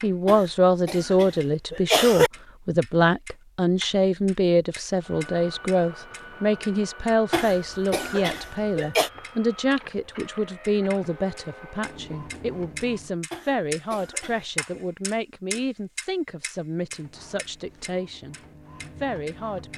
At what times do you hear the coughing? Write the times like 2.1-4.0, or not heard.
0.2-2.3, 7.3-9.1, 13.3-14.8.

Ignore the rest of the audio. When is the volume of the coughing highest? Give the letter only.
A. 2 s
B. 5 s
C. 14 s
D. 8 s
A.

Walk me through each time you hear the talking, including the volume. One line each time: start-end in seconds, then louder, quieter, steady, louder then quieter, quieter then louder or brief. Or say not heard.
0.0-18.4 quieter
19.0-19.7 brief.